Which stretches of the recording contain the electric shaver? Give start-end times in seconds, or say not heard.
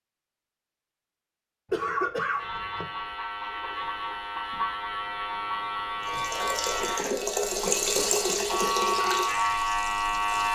2.4-10.5.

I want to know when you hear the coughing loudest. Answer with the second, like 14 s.
2 s.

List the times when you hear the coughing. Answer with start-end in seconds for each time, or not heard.
1.7-2.9, 6.8-8.8.